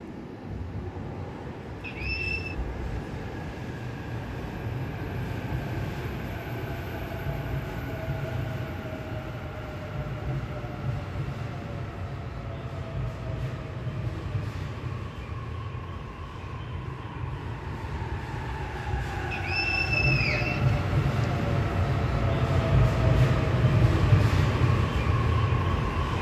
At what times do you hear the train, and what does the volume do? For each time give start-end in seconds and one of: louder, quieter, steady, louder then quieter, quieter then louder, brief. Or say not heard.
0.0-26.1 louder.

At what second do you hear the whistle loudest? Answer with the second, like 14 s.
20 s.